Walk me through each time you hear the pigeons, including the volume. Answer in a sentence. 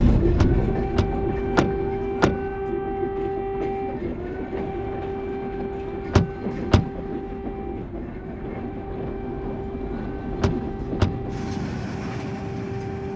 The pigeons can't be heard in this clip.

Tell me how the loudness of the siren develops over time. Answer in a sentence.
The volume of the siren goes down.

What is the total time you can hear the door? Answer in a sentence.
The door can be heard for 4 seconds in total.